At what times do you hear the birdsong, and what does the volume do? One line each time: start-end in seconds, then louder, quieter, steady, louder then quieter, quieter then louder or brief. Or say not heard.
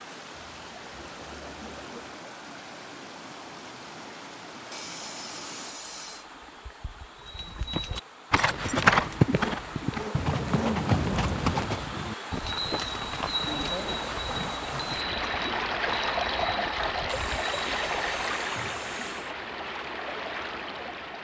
not heard.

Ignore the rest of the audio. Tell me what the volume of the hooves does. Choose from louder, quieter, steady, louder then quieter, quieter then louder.
quieter.